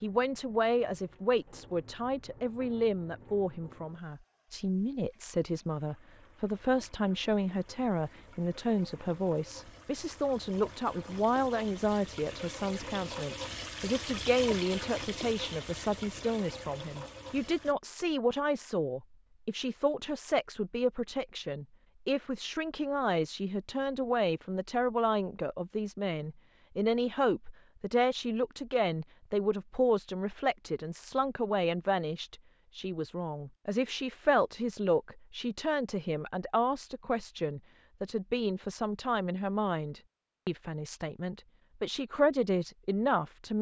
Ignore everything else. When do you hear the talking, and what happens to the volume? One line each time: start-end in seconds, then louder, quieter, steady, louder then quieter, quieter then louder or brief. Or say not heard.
0.0-43.5 steady.